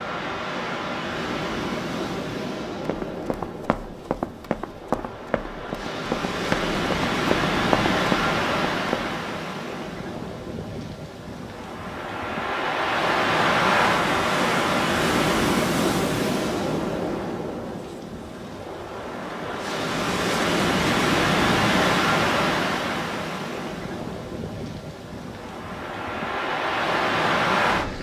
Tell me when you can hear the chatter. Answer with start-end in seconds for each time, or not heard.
not heard.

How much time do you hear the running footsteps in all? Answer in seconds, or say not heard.
6 s.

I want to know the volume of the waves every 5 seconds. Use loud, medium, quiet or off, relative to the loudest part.
medium, loud, loud, loud, loud, loud.